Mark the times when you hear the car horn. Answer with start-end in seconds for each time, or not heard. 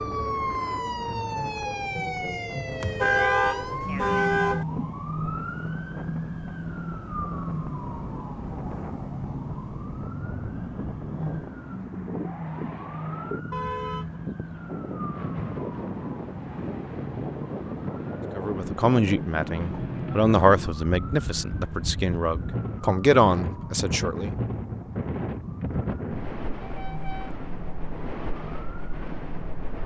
2.8-4.7, 13.5-14.2, 26.6-27.4.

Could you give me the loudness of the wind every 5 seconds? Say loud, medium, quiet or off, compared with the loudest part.
medium, medium, medium, loud, loud, loud.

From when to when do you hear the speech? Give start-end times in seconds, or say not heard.
18.4-24.4.